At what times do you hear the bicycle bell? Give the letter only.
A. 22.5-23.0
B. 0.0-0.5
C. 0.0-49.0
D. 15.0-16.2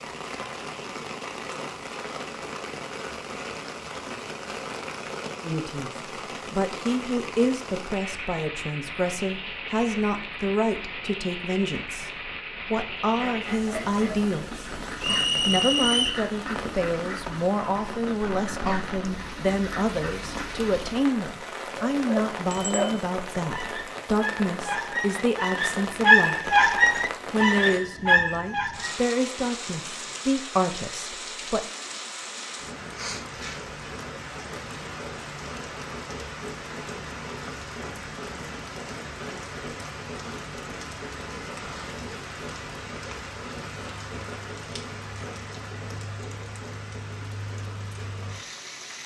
A.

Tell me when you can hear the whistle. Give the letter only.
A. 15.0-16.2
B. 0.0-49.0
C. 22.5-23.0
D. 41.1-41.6
A.